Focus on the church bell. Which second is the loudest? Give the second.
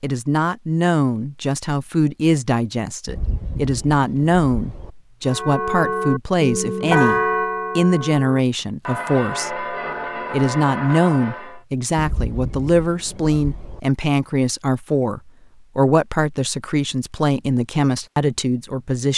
7 s.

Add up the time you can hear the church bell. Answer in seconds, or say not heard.
6 s.